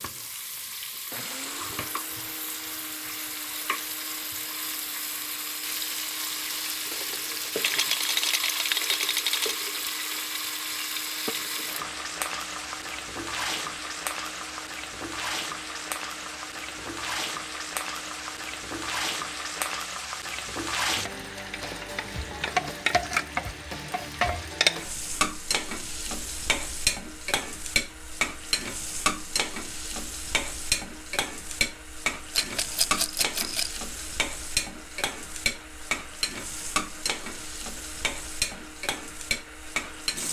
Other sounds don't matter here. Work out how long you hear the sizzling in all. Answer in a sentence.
The sizzling can be heard for 40 seconds in total.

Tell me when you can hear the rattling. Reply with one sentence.
The rattling can be heard from 7.6 to 9.6 s and from 32.4 to 33.8 s.